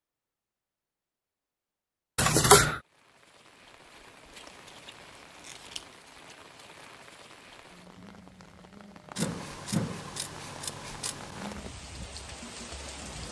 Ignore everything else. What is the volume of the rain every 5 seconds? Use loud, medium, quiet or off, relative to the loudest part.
medium, medium, loud.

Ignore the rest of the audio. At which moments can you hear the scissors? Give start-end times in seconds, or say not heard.
2.1-2.8, 4.5-5.8, 9.2-11.6.